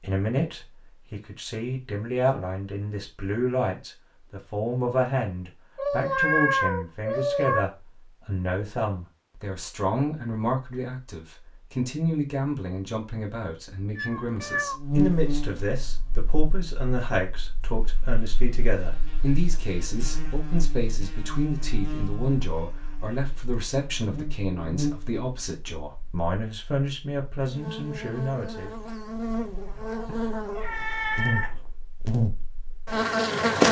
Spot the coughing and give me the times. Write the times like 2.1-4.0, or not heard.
not heard.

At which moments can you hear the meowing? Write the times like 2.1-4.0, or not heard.
5.8-7.7, 13.9-14.8, 30.1-31.6.